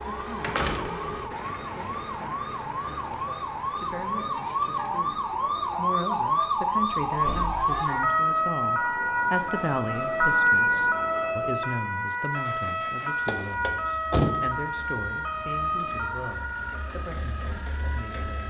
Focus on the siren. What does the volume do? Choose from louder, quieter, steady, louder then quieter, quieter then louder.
louder then quieter.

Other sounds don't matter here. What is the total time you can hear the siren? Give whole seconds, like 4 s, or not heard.
18 s.